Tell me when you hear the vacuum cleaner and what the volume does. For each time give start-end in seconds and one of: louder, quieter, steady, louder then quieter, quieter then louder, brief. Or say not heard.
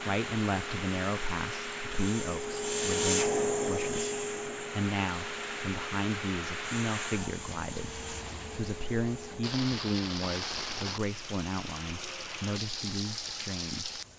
0.0-9.6 louder then quieter.